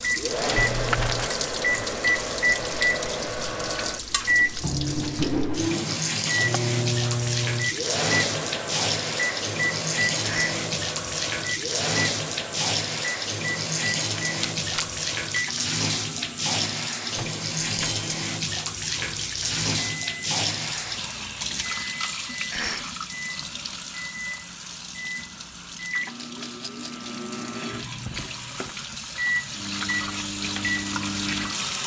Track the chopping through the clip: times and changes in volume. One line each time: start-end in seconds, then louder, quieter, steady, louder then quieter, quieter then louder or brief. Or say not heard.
not heard.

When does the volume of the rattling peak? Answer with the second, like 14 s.
1 s.